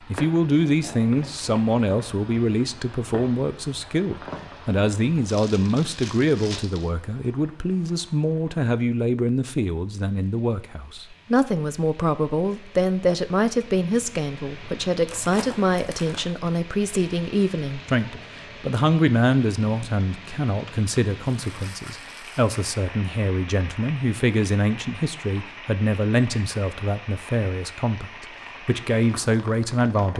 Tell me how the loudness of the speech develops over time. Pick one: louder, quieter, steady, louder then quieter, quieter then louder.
steady.